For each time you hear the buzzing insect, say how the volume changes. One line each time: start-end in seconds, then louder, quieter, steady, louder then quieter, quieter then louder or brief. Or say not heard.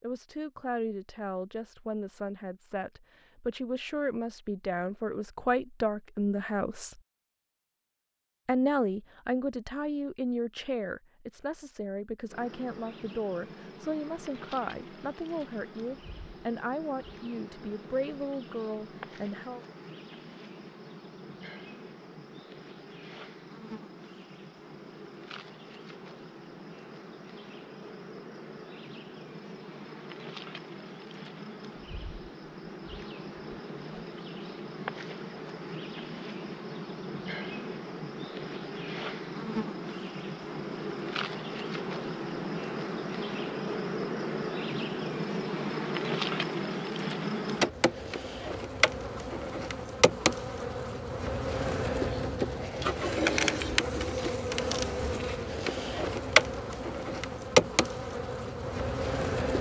12.2-59.5 louder.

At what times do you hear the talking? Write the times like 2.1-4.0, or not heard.
0.0-7.0, 8.4-19.6.